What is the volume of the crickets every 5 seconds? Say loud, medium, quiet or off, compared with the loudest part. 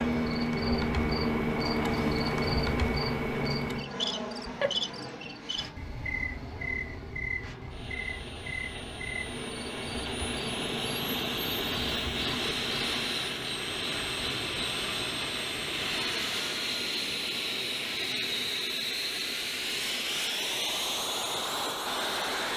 loud, medium, medium, off, off.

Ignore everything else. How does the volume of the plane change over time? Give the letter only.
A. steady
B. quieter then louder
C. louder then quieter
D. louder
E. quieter
B.